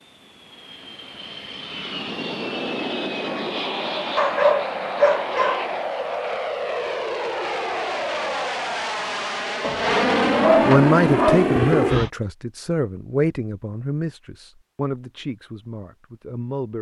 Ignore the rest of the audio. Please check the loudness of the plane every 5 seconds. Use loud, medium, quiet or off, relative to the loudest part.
medium, medium, loud, off.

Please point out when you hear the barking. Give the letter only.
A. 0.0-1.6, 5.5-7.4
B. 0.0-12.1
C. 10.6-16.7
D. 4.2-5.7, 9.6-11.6
D.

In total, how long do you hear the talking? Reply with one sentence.
You can hear the talking for 6 seconds altogether.